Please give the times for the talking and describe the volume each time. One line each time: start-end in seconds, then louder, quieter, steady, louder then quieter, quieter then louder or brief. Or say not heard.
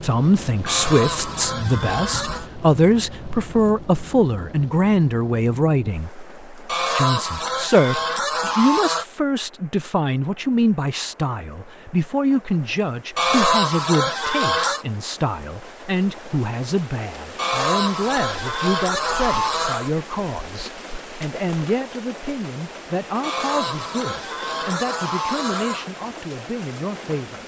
0.0-27.4 quieter.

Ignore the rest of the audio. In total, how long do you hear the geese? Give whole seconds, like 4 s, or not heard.
11 s.